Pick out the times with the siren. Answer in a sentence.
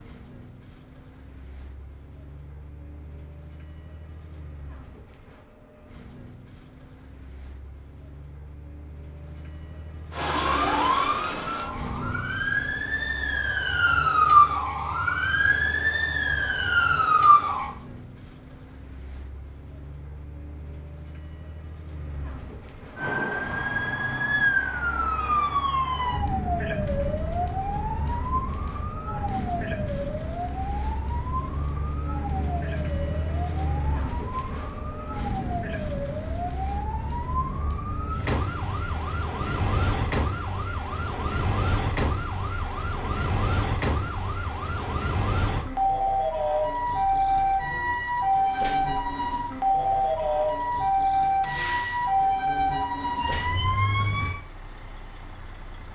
You can hear the siren from 10.1 to 17.7 s and from 22.9 to 54.4 s.